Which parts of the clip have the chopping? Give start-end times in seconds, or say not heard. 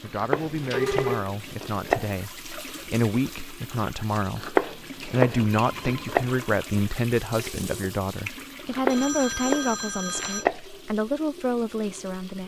0.1-2.2, 4.3-6.2, 8.7-10.6.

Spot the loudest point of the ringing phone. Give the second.
1 s.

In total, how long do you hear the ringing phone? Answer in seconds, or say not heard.
3 s.